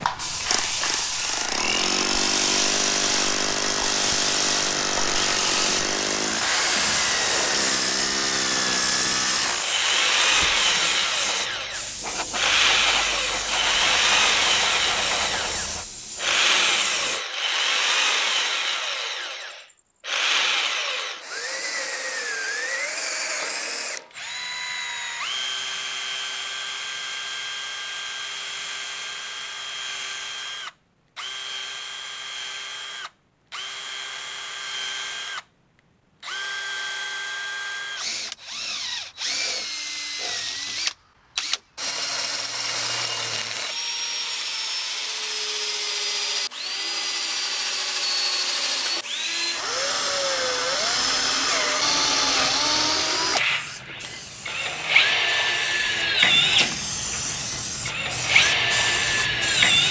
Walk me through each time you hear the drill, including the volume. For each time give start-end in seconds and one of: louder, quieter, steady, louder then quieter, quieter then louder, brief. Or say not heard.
0.0-59.8 quieter then louder.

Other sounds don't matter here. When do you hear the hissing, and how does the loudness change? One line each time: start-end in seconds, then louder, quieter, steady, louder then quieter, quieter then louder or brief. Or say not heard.
0.0-17.2 steady
53.0-59.8 louder.